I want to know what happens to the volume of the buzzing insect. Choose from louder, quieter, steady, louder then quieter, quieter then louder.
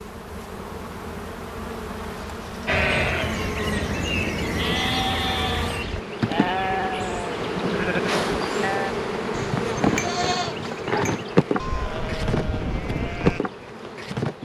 louder.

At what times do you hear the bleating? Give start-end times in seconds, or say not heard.
2.6-13.4.